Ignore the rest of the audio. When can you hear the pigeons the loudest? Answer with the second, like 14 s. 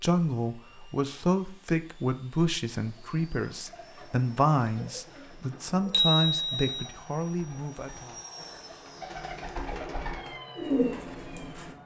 11 s.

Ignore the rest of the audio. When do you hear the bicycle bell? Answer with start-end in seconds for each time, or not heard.
5.9-6.8.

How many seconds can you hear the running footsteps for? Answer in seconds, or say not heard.
not heard.